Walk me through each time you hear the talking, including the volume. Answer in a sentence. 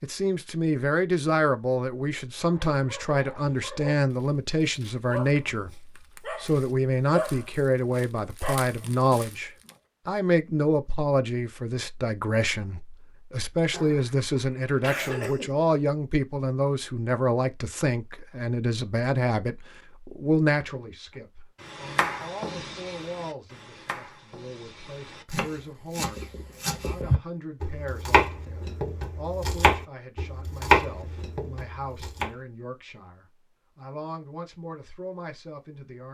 The talking can be heard from 0.0 to 36.0 s, getting quieter.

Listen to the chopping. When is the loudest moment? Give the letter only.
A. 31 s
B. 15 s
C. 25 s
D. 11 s
A.